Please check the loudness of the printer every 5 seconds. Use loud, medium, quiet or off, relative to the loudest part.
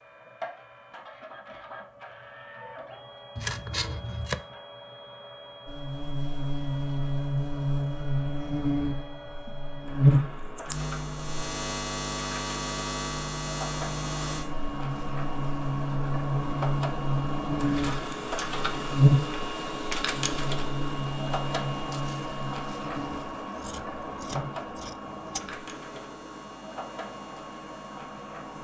medium, medium, medium, loud, loud, medium.